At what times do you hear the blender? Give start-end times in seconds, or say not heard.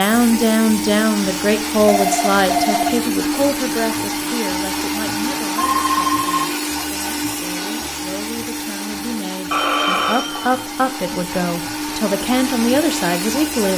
0.0-13.7.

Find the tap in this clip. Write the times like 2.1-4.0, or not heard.
not heard.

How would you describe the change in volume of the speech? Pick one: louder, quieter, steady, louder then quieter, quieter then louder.
quieter then louder.